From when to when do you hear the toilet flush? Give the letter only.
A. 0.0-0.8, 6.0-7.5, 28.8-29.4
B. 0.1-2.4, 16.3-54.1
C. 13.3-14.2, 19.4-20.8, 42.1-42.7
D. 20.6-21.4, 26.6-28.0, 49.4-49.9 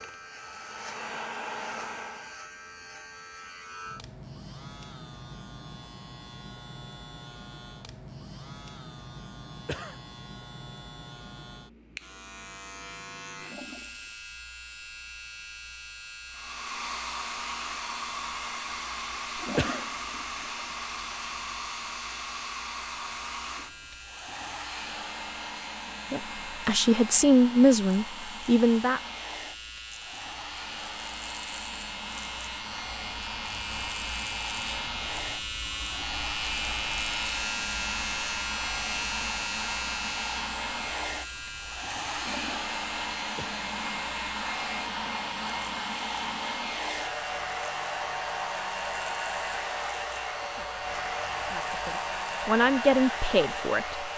C.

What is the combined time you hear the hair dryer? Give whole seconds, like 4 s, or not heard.
40 s.